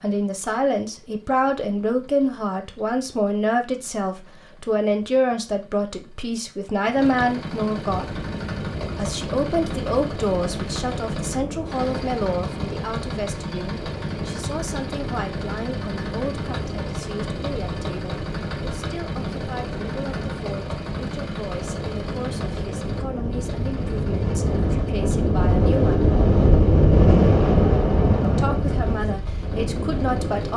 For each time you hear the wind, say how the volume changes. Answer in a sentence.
The wind can be heard from 8.1 to 30.5 s, getting louder.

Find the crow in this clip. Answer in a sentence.
The crow can't be heard in this clip.